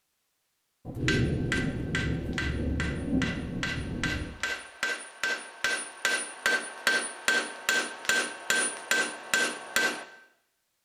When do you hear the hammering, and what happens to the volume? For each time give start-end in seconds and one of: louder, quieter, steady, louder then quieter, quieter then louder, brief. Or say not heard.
1.1-10.1 louder.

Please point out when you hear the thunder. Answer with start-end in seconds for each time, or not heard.
0.8-4.3.